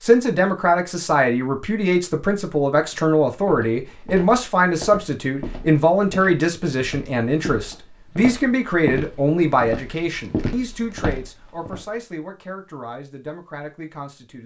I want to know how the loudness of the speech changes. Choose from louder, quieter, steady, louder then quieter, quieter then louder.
quieter.